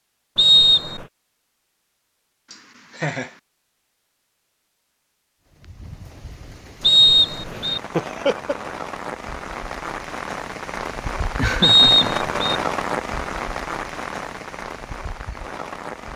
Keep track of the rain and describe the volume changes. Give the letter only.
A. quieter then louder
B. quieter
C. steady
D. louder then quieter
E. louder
D.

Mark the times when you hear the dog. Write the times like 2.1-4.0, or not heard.
not heard.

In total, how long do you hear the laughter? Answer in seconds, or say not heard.
2 s.